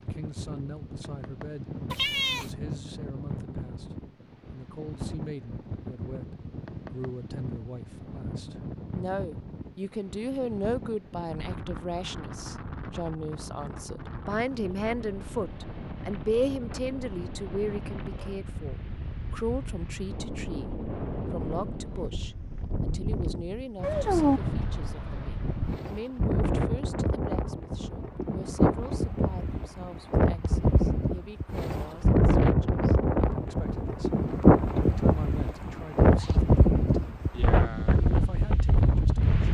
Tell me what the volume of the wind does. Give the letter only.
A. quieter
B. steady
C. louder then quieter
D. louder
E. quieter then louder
D.